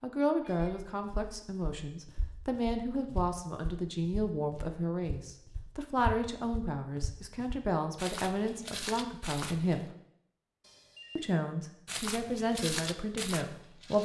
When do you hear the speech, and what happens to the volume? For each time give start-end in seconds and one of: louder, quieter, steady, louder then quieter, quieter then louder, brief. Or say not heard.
0.0-9.9 steady
11.2-14.0 brief.